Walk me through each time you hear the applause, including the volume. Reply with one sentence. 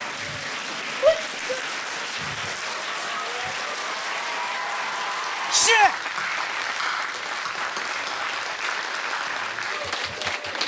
You can hear the applause from 0.0 to 10.6 s, at a steady volume.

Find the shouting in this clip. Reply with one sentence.
The shouting can be heard from 1.0 to 1.6 s and from 5.5 to 6.0 s.